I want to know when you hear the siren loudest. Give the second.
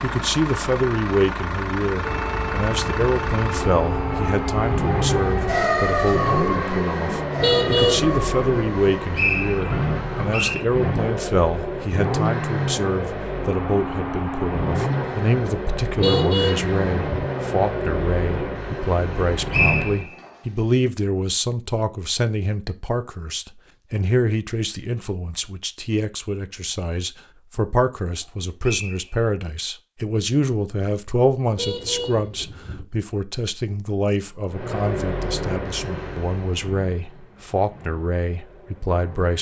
6 s.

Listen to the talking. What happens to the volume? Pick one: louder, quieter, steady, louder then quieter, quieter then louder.
steady.